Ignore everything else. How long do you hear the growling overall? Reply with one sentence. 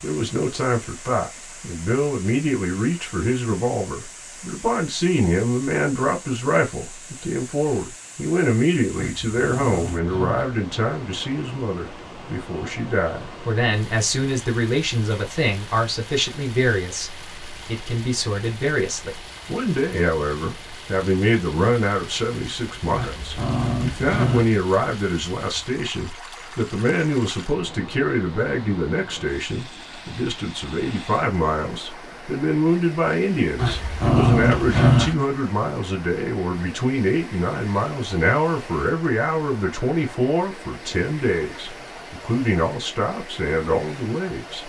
The growling can be heard for 5 seconds in total.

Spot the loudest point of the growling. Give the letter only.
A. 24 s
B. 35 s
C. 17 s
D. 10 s
B.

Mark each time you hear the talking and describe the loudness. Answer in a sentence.
The talking can be heard from 0.0 to 44.6 s, at a steady volume.